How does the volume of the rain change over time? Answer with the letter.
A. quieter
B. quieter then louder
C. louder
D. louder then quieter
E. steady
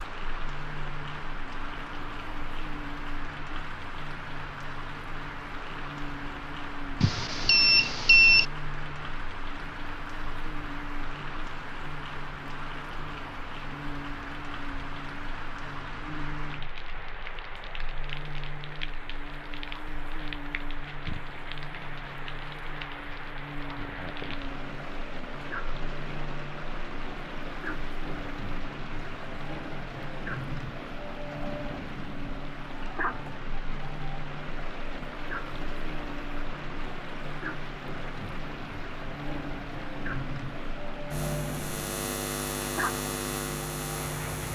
E.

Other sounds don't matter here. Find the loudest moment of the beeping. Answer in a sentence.
The volume of the beeping peaks at 8 seconds.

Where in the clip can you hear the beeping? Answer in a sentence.
You can hear the beeping from 7.0 to 8.4 s.